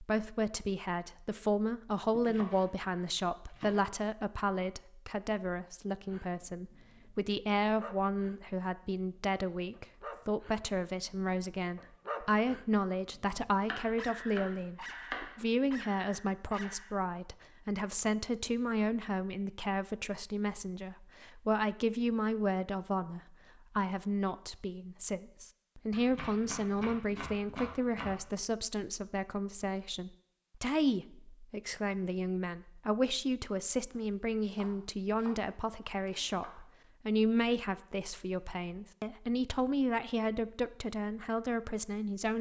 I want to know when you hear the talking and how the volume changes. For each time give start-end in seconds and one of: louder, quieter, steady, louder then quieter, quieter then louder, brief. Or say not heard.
0.0-42.3 steady.